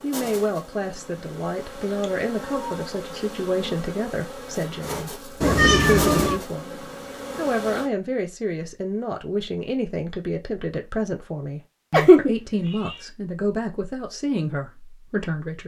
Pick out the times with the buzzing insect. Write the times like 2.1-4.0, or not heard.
0.0-7.9.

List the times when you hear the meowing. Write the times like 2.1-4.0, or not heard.
2.0-3.3, 5.4-6.4, 11.9-12.9.